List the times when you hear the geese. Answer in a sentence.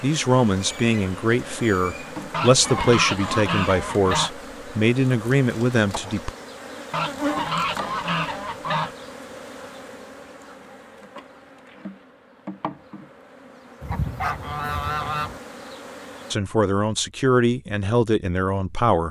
You can hear the geese from 2.3 to 4.3 s, from 6.9 to 8.9 s and from 13.8 to 15.4 s.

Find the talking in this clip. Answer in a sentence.
The talking can be heard from 0.0 to 6.3 s and from 16.3 to 19.0 s.